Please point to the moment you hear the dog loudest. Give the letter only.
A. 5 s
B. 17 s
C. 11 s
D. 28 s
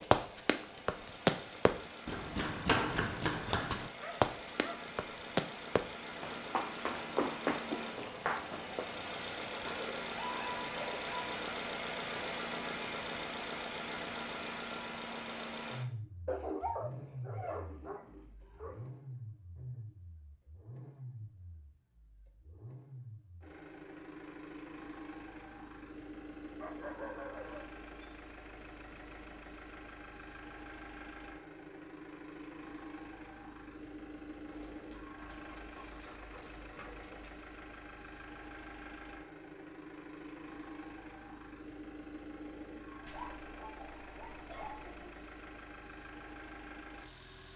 B.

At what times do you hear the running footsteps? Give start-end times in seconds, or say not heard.
0.0-8.9.